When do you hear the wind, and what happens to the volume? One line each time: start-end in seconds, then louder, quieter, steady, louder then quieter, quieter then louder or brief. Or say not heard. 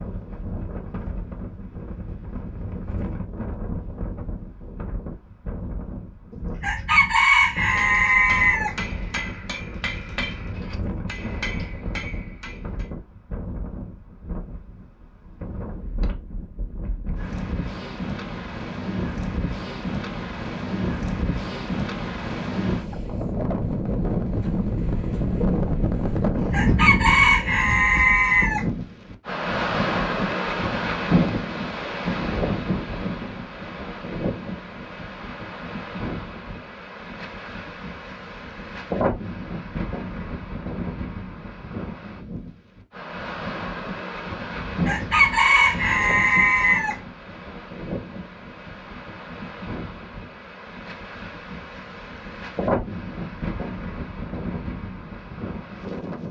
0.0-56.2 louder then quieter.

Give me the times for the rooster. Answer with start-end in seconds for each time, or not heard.
6.3-8.8, 26.4-28.6, 44.5-47.0.